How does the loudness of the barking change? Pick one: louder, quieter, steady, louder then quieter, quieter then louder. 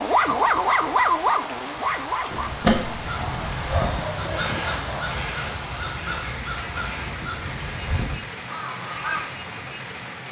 quieter.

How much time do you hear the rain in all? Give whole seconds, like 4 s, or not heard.
10 s.